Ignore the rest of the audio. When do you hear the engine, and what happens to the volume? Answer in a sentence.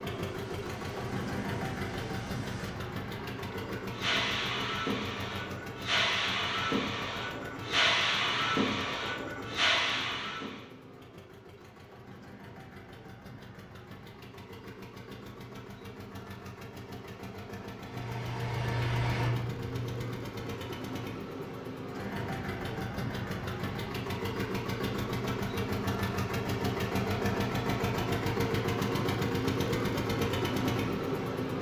The engine can be heard from 0.0 to 31.5 s, getting quieter then louder.